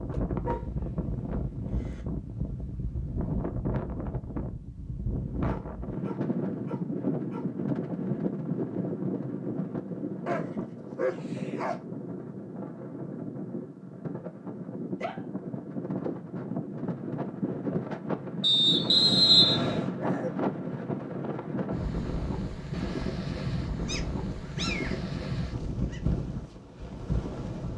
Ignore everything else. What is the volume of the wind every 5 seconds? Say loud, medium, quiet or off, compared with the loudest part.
loud, loud, medium, loud, loud, loud.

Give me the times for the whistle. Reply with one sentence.
You can hear the whistle from 18.4 to 19.9 s.